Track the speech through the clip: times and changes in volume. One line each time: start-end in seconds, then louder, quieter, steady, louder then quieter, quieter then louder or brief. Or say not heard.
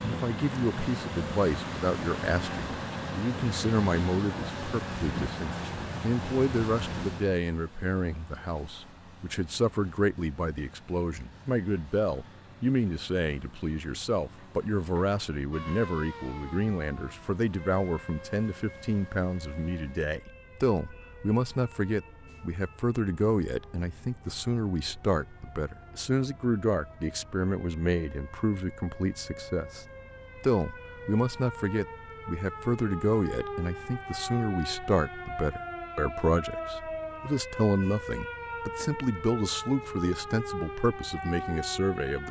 0.0-42.2 steady.